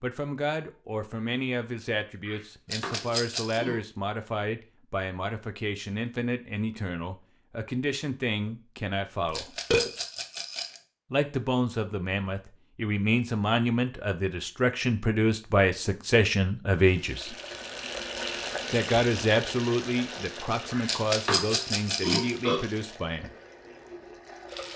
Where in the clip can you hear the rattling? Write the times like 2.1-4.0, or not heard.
2.7-3.6, 9.3-10.8, 20.9-22.3.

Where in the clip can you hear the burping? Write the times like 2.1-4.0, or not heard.
2.2-3.8, 9.2-9.9, 20.7-22.6.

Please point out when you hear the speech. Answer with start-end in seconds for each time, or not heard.
0.0-9.6, 11.1-17.4, 18.7-23.3.